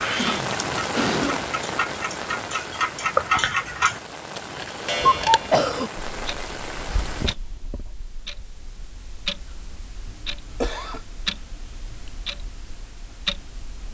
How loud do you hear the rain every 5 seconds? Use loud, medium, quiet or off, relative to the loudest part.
loud, loud, off.